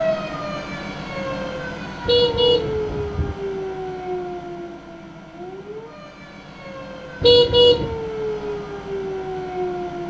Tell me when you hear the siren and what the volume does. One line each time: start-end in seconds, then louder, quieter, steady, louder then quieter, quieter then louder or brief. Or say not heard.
0.0-10.0 quieter then louder.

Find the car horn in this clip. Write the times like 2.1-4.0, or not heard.
2.0-3.4, 7.2-8.0.